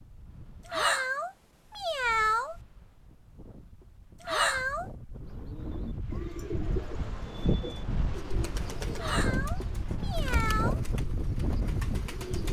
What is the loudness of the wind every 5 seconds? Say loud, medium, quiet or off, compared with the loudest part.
quiet, loud, loud.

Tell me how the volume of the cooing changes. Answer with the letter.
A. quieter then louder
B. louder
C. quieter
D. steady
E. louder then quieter
C.